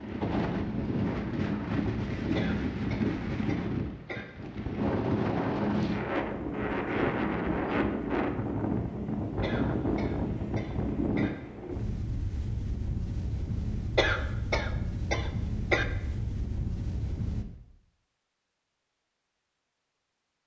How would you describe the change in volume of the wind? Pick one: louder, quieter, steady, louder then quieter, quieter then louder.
quieter.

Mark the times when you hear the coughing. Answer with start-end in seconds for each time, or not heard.
2.4-4.2, 9.4-11.3, 13.9-15.8.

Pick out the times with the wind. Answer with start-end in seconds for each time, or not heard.
0.0-17.4.